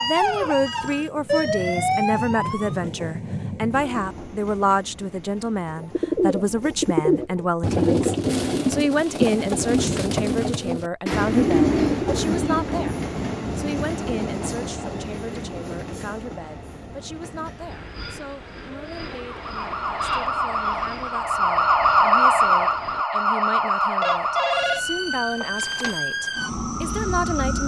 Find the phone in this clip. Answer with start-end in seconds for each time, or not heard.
0.5-1.1, 24.0-26.0.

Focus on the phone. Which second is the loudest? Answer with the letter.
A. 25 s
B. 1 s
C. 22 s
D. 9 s
A.